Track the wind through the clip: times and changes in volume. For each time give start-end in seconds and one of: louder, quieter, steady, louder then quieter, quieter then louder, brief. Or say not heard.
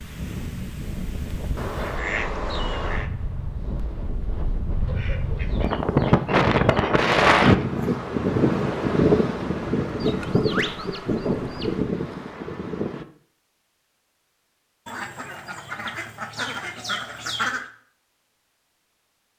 0.0-13.1 louder then quieter.